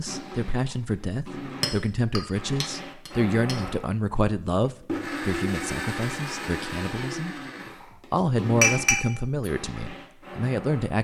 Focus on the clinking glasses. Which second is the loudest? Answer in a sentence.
The loudest moment of the clinking glasses is at 9 seconds.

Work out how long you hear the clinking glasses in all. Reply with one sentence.
You can hear the clinking glasses for 3 seconds altogether.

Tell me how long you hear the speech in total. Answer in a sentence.
You can hear the speech for 10 seconds altogether.